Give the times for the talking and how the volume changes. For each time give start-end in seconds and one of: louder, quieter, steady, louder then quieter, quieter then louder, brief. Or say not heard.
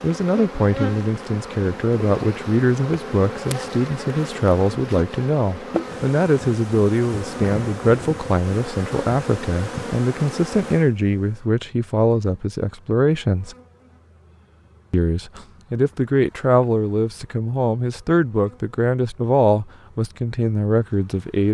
0.0-13.6 steady
14.9-21.4 steady.